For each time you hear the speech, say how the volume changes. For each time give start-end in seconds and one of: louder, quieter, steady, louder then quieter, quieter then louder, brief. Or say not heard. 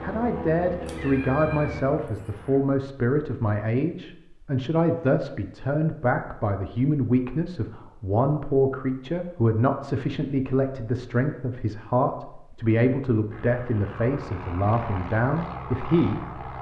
0.0-16.4 steady.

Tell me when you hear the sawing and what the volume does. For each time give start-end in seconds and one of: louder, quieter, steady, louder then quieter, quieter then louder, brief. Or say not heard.
not heard.